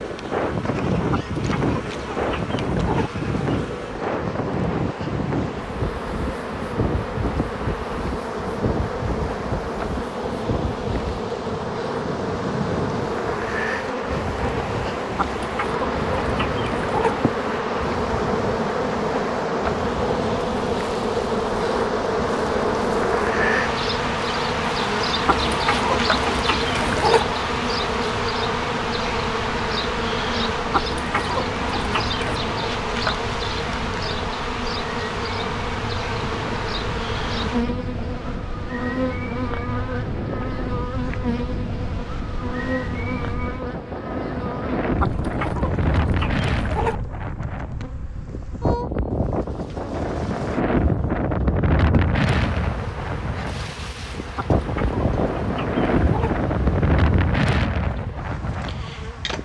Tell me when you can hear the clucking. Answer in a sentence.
The clucking can be heard from 1.1 to 3.1 s, from 15.2 to 17.1 s, from 25.2 to 27.2 s, from 30.7 to 32.4 s, from 45.0 to 47.0 s and from 54.4 to 56.4 s.